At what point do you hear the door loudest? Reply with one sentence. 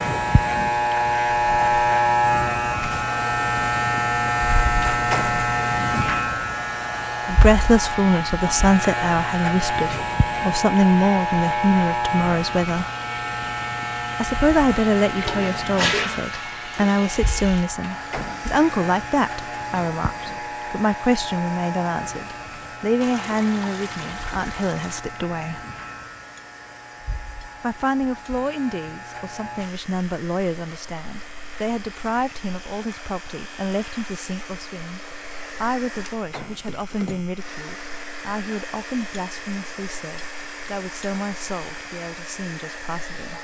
The loudest moment of the door is at 5 seconds.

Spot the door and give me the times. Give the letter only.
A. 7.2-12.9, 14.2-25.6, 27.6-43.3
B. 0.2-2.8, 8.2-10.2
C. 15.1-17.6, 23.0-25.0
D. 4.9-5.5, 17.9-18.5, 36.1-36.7
D.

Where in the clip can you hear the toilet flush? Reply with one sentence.
You can hear the toilet flush from 15.1 to 17.6 s and from 23.0 to 25.0 s.